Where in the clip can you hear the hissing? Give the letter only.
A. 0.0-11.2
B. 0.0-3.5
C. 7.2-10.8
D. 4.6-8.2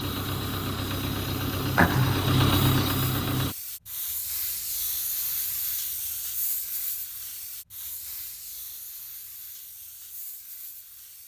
A.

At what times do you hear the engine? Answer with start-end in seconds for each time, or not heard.
0.0-3.5.